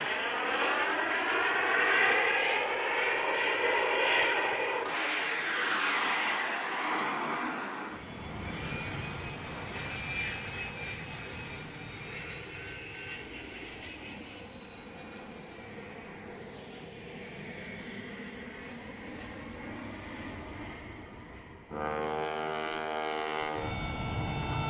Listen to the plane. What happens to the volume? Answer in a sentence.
The loudness of the plane goes down, then up.